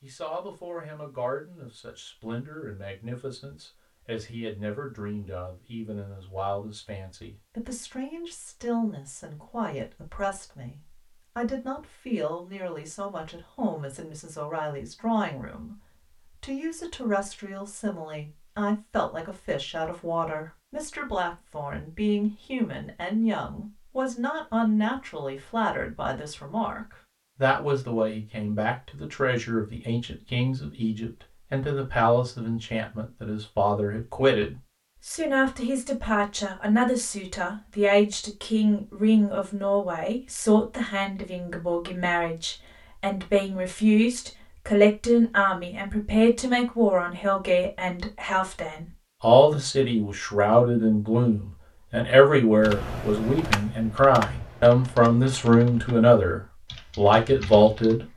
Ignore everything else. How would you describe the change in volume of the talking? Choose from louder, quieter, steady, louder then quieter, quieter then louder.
louder.